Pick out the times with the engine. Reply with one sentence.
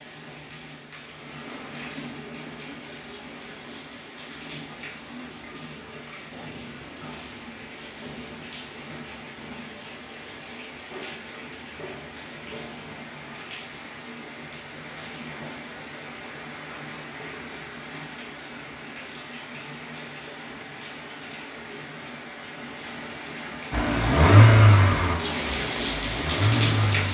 You can hear the engine from 23.7 to 27.0 s.